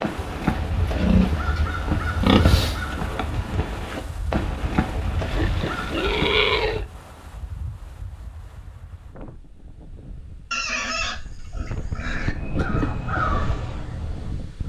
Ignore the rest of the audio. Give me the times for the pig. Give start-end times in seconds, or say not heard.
0.1-2.8, 5.3-6.8, 10.5-12.3.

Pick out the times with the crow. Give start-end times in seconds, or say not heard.
0.0-6.8, 11.9-14.6.